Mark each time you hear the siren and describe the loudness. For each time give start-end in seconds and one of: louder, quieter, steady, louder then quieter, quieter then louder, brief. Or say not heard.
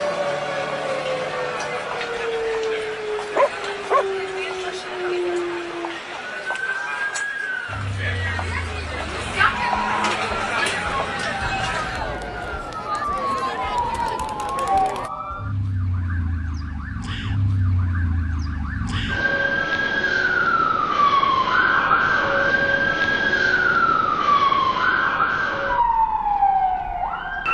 0.0-27.4 louder.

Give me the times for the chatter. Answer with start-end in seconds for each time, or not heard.
0.0-15.1.